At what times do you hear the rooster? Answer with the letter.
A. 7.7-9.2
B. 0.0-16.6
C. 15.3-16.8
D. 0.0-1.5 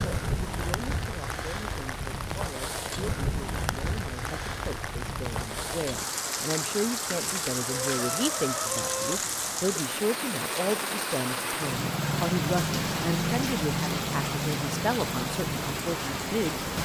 A.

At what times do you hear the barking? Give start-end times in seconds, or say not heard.
not heard.